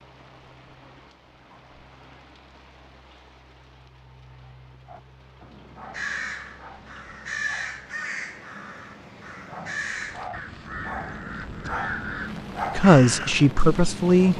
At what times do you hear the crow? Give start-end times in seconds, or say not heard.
5.9-13.4.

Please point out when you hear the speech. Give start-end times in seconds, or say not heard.
12.8-14.3.